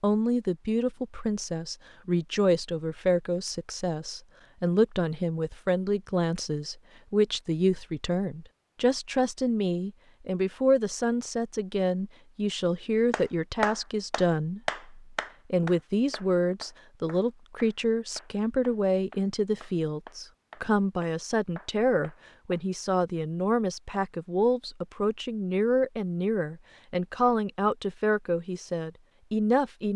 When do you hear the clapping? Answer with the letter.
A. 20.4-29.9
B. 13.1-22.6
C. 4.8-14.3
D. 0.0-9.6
B.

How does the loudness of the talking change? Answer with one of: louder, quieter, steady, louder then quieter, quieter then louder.
steady.